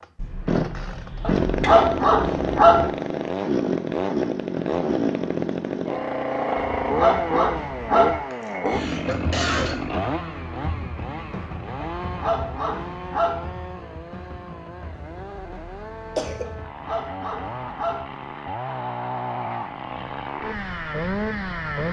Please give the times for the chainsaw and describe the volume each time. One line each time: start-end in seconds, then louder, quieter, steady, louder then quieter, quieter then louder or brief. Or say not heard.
0.0-21.8 quieter then louder.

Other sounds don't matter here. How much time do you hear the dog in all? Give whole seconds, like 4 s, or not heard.
6 s.